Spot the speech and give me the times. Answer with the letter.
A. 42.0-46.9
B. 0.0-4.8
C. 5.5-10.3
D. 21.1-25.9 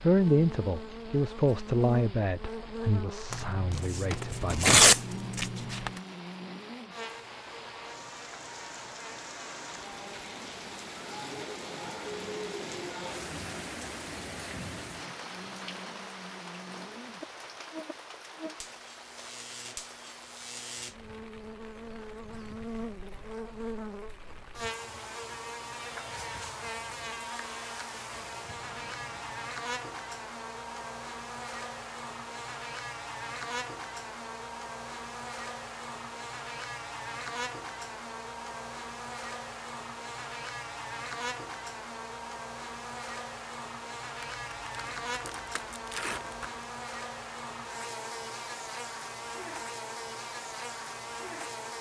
B.